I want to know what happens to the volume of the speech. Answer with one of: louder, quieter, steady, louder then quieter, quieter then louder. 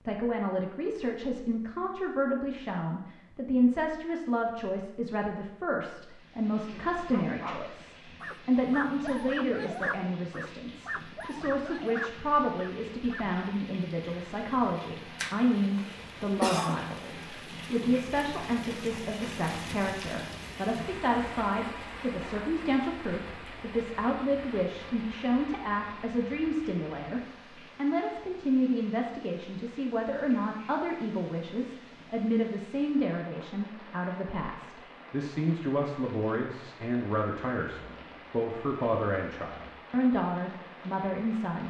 steady.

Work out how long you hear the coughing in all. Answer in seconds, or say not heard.
2 s.